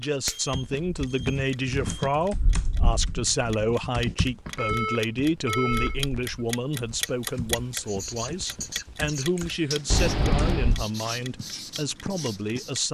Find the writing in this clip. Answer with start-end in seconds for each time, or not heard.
7.0-12.8.